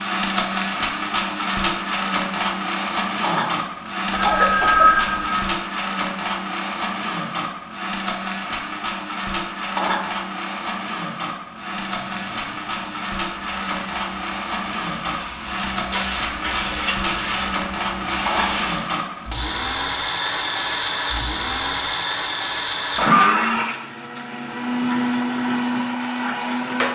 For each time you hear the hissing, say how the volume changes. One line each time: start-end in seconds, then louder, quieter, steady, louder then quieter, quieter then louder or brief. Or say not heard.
11.6-18.9 louder.